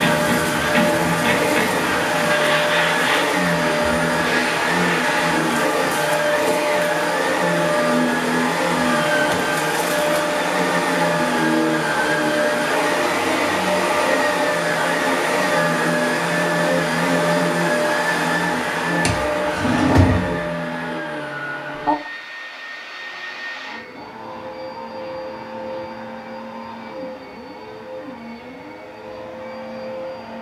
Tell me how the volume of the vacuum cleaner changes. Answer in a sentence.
The volume of the vacuum cleaner goes down.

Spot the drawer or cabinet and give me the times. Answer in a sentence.
The drawer or cabinet can be heard from 19.1 to 20.4 s.